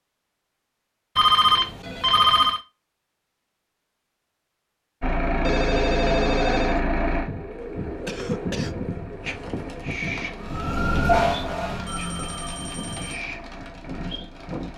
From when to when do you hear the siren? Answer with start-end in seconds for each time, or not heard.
10.4-12.6.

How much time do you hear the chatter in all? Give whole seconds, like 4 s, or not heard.
not heard.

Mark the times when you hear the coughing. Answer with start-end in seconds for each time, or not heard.
8.1-8.8.